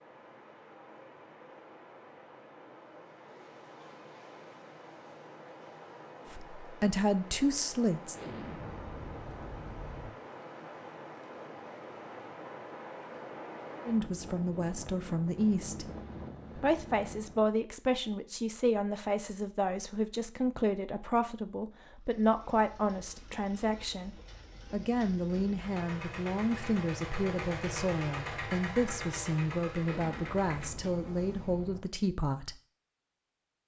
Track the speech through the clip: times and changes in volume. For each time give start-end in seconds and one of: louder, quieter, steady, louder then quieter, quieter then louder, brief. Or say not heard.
6.3-8.2 brief
13.8-15.9 brief
16.6-32.5 steady.